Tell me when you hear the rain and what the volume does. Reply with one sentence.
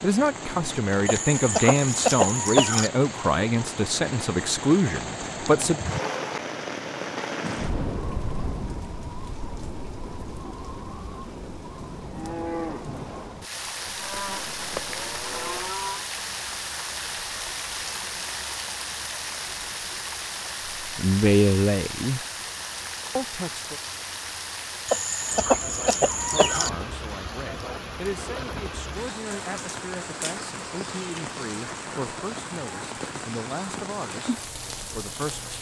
You can hear the rain from 0.0 to 35.5 s, at a steady volume.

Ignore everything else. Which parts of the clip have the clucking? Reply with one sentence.
You can hear the clucking from 1.1 to 2.9 s and from 24.9 to 26.7 s.